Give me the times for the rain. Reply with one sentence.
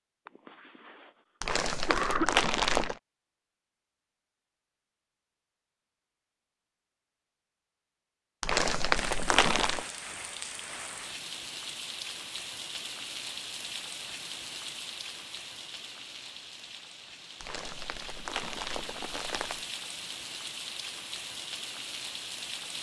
You can hear the rain from 9.0 to 22.7 s.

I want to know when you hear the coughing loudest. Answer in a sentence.
The volume of the coughing peaks at 2 seconds.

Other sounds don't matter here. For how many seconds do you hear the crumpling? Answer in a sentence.
The crumpling can be heard for 5 seconds in total.